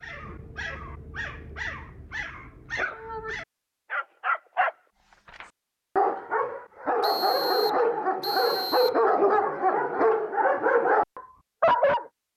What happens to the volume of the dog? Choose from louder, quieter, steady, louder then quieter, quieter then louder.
louder.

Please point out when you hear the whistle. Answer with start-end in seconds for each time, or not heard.
7.0-9.0.